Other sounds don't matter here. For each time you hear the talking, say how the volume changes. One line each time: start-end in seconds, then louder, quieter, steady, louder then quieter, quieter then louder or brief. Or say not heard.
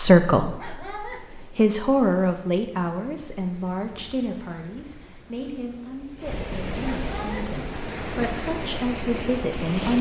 0.0-9.9 quieter then louder.